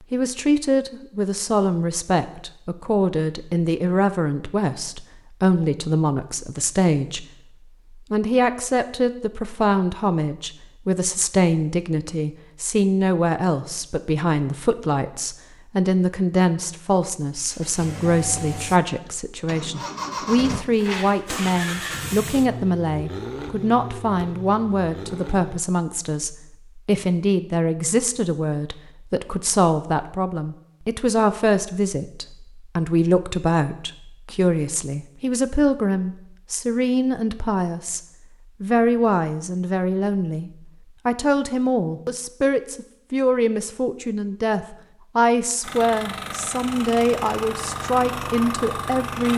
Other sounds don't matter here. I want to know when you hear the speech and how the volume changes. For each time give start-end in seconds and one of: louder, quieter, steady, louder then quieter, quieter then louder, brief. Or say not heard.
0.1-7.2 steady
8.1-38.0 steady
38.6-49.3 steady.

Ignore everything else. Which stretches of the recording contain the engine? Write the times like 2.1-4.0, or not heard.
17.3-25.6, 45.6-49.3.